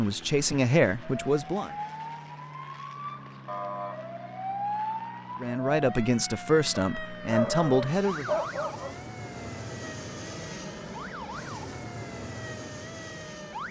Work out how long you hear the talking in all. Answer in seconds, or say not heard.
5 s.